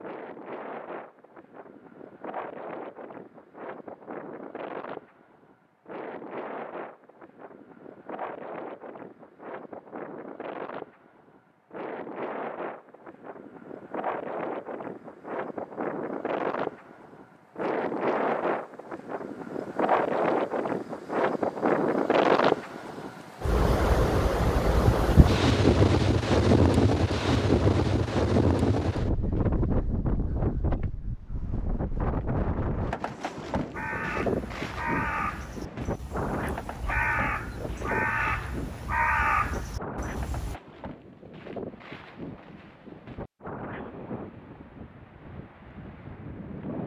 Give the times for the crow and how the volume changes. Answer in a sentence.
You can hear the crow from 33.7 to 40.5 s, getting quieter then louder.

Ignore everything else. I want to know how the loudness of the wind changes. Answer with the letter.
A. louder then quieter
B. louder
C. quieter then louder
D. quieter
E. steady
A.